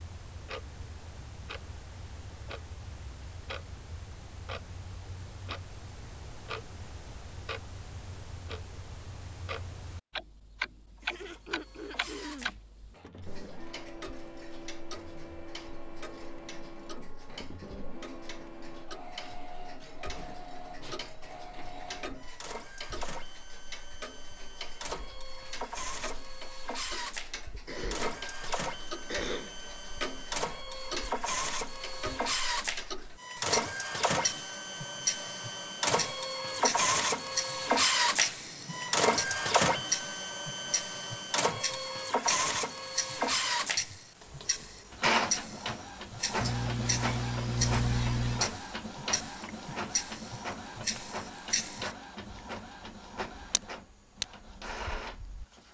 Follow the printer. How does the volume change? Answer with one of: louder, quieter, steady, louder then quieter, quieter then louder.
louder then quieter.